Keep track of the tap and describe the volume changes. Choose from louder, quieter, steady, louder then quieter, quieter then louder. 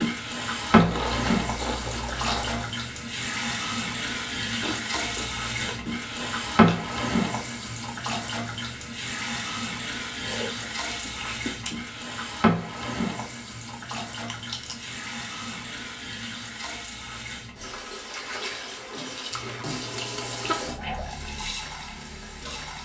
quieter.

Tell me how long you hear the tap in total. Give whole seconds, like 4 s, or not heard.
23 s.